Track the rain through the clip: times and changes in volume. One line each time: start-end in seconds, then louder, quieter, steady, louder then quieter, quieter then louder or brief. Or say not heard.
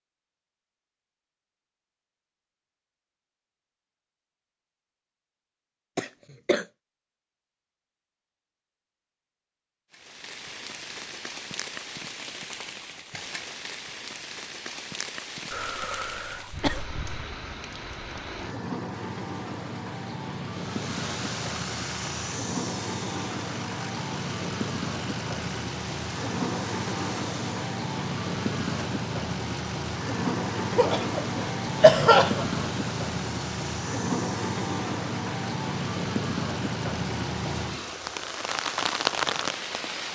9.9-40.1 louder.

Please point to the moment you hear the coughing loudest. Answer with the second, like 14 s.
32 s.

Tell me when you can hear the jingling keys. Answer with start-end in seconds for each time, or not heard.
not heard.